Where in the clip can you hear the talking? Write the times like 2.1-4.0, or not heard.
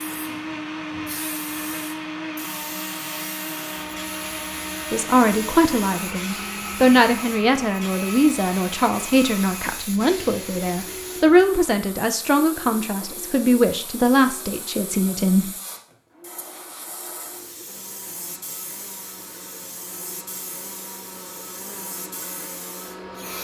4.9-15.5.